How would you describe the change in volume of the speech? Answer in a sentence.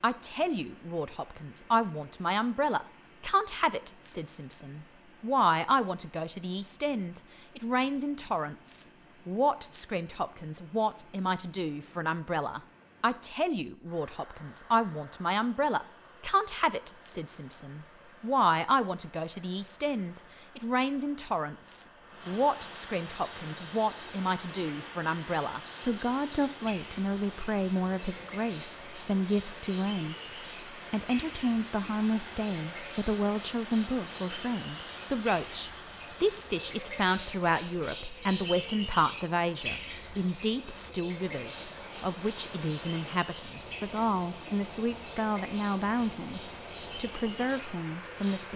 The volume of the speech stays about the same.